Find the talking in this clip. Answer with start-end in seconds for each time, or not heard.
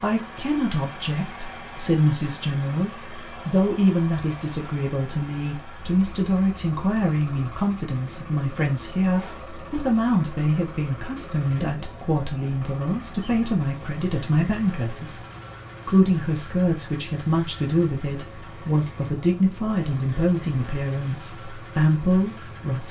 0.0-15.2, 15.8-22.8.